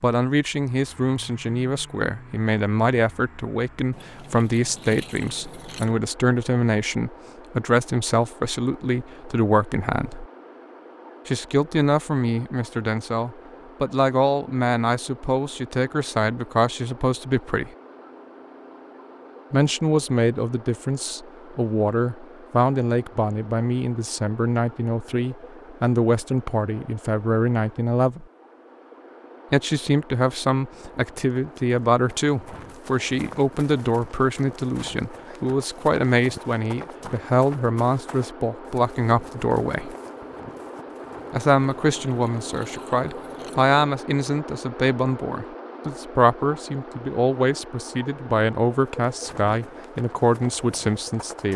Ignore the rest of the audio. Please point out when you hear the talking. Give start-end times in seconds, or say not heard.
0.0-10.2, 11.2-17.7, 19.5-28.2, 29.5-40.0, 41.3-51.5.